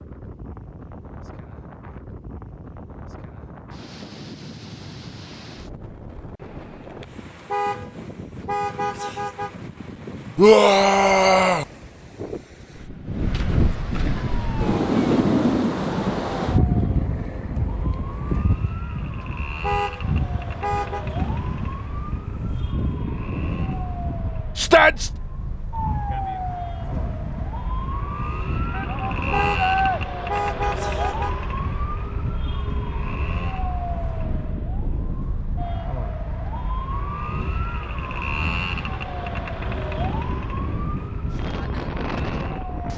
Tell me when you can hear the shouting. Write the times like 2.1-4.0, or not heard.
10.3-11.7, 24.6-25.1, 28.7-30.0.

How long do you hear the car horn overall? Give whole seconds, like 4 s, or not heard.
6 s.